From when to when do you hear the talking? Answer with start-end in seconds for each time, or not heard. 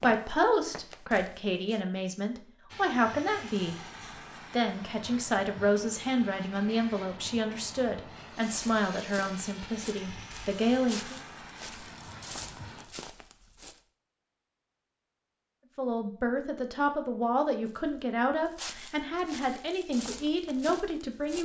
0.0-3.8, 4.5-11.2, 15.8-21.4.